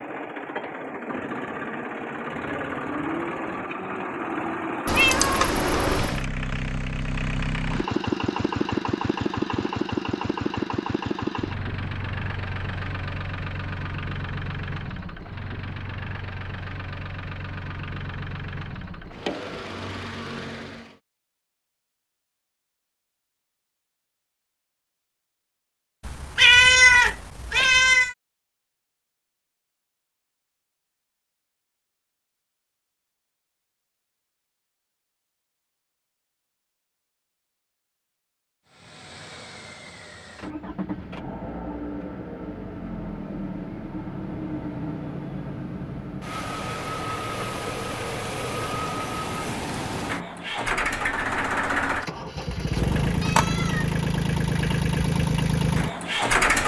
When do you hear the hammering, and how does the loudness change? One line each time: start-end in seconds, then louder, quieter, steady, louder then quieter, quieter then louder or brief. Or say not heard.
not heard.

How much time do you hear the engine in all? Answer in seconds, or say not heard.
39 s.